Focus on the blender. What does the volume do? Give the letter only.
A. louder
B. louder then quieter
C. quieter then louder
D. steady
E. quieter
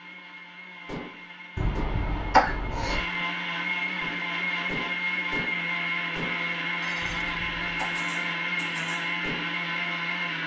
A.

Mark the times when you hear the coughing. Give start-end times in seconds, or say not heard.
1.6-3.0, 7.0-8.0.